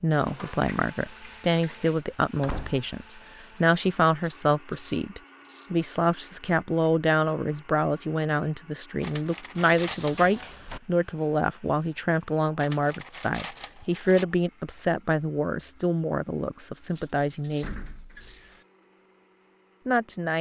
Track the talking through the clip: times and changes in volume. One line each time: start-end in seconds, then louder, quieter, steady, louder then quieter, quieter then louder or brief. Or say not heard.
0.0-17.8 steady
19.9-20.3 brief.